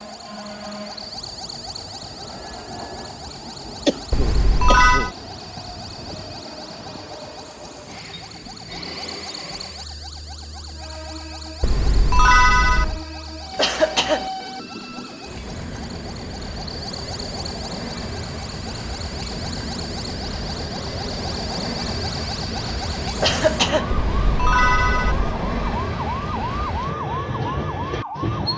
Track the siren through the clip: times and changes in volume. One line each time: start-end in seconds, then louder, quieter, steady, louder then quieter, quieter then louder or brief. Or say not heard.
0.0-28.5 louder.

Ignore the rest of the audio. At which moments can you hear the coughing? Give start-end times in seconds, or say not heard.
3.9-5.1, 13.6-14.3, 23.2-23.9.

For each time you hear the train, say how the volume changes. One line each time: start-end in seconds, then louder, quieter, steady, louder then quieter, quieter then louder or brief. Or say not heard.
0.0-28.5 louder.